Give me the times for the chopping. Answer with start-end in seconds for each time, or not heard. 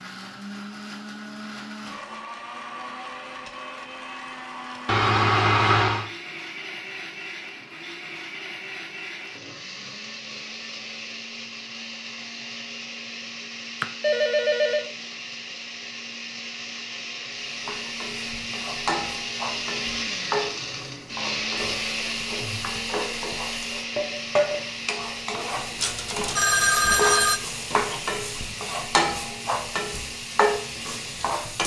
not heard.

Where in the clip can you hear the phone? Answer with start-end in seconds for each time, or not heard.
4.8-6.1, 13.8-14.9, 25.8-27.4.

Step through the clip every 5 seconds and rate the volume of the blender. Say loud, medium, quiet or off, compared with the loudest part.
medium, medium, medium, loud, loud, medium, medium.